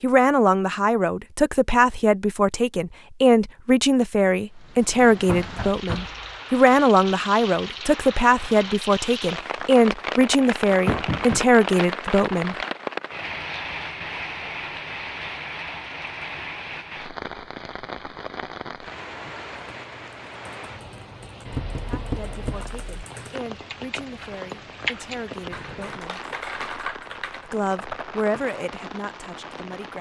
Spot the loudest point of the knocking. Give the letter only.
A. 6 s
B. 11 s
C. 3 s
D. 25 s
B.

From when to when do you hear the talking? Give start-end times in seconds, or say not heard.
0.0-12.6, 21.7-26.2, 27.4-29.9.